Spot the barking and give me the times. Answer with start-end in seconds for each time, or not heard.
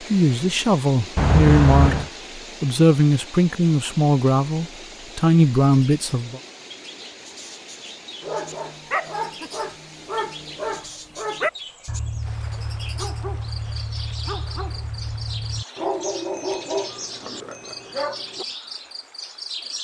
8.2-18.4.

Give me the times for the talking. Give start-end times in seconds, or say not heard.
0.1-6.4.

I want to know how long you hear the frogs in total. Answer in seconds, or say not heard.
not heard.